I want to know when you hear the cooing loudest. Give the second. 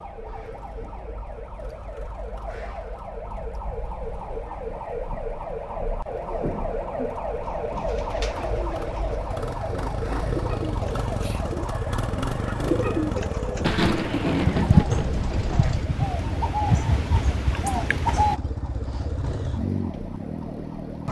15 s.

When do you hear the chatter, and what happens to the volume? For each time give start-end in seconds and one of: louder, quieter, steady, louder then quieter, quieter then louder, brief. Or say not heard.
not heard.